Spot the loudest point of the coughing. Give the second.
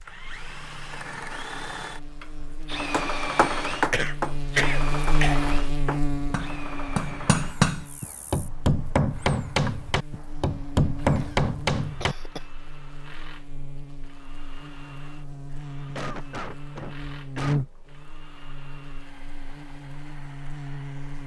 5 s.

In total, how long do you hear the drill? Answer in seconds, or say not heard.
21 s.